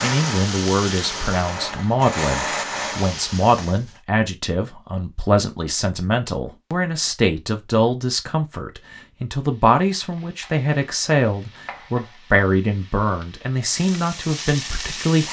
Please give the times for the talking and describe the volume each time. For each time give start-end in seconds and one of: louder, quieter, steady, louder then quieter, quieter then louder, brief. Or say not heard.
0.0-15.2 steady.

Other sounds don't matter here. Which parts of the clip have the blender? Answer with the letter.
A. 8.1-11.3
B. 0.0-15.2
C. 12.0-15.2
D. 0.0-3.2
D.